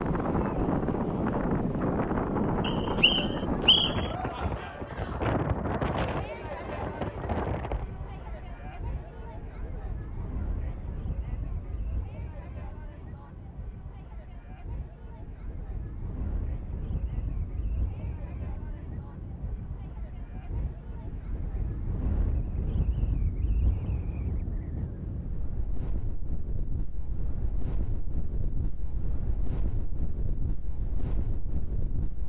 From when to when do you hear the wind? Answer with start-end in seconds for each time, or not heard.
0.0-32.2.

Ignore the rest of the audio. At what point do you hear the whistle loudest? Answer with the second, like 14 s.
4 s.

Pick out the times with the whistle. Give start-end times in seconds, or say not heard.
2.6-4.1.